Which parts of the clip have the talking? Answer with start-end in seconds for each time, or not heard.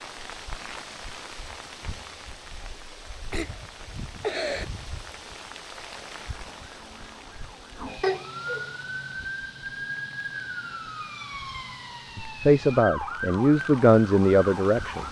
12.2-15.0.